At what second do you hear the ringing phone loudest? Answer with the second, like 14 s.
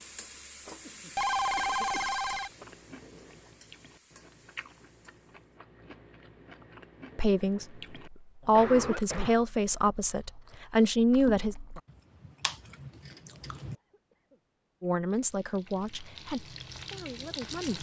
1 s.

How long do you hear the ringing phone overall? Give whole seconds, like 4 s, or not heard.
2 s.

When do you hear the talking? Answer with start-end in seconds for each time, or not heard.
7.2-11.6, 14.8-17.7.